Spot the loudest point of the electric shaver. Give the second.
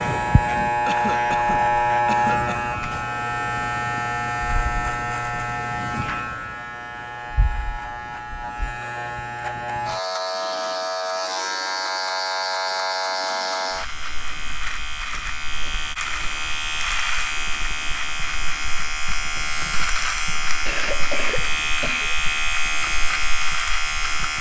2 s.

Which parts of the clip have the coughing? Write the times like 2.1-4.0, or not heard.
0.8-2.8, 20.6-22.1.